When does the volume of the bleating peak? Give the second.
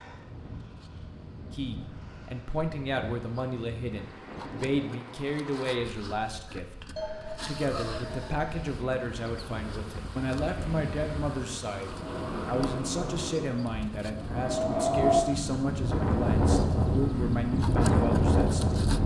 7 s.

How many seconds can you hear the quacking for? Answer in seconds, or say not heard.
not heard.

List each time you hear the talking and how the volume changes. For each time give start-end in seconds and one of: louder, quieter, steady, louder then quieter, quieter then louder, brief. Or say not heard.
1.5-18.8 steady.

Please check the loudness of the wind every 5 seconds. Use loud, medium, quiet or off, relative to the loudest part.
quiet, quiet, medium, loud.